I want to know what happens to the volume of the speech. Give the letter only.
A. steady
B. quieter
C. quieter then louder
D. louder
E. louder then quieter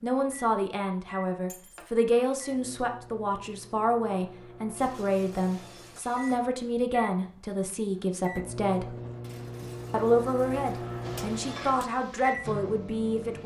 A.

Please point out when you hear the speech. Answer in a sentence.
The speech can be heard from 0.0 to 8.9 s and from 9.9 to 13.4 s.